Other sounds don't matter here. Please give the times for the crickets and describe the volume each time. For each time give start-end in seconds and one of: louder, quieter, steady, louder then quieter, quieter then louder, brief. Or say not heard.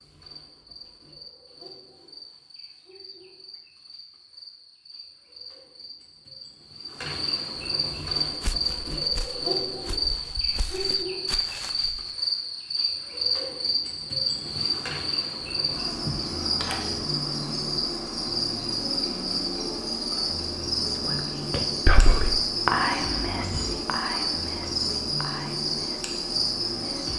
0.0-27.1 louder.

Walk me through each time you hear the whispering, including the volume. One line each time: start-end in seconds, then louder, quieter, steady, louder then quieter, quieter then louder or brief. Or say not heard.
20.9-27.1 quieter.